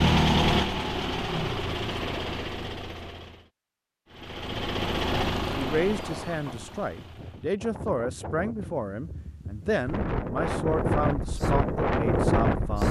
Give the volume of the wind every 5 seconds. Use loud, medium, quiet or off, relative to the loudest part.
off, quiet, loud.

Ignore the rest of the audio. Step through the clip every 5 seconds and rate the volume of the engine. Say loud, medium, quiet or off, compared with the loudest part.
loud, medium, off.